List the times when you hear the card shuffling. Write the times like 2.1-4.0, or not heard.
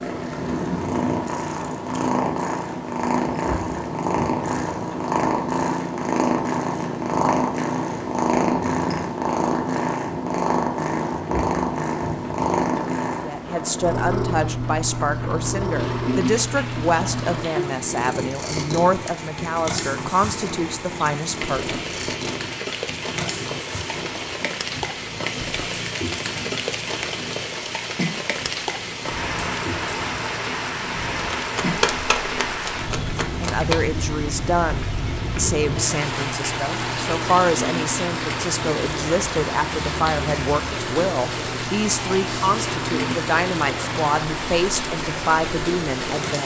31.4-33.8.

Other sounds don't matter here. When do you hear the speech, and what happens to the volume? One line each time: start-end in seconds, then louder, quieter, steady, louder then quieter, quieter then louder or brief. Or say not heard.
13.2-22.0 steady
33.2-46.4 steady.